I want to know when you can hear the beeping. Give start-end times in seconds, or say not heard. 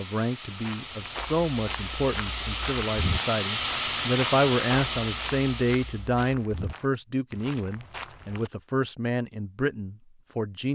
not heard.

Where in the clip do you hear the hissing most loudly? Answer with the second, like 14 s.
4 s.